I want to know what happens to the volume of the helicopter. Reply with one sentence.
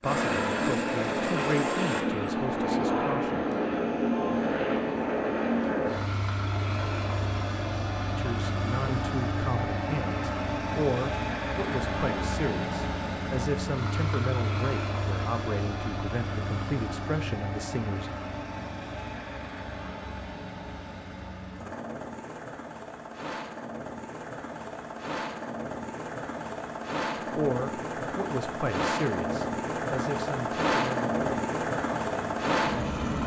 The volume of the helicopter goes down, then up.